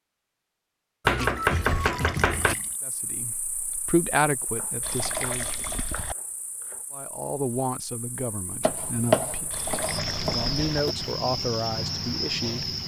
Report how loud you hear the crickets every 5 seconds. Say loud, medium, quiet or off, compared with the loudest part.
quiet, quiet, loud.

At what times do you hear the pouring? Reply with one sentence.
You can hear the pouring from 1.1 to 2.8 s, from 4.8 to 6.2 s and from 9.5 to 11.0 s.